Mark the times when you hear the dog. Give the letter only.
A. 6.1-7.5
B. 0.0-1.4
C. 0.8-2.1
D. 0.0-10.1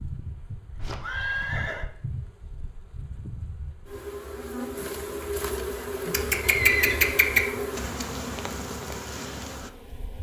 A.